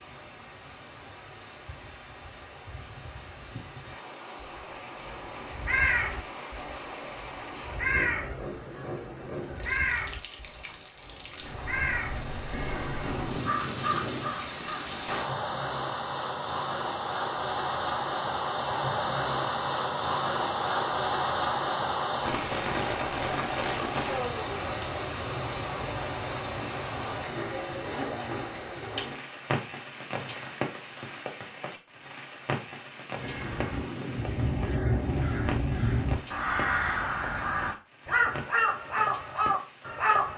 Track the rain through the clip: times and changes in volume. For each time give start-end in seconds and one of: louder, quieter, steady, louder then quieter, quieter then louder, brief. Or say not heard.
0.0-40.3 louder then quieter.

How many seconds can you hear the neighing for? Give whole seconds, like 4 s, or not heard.
4 s.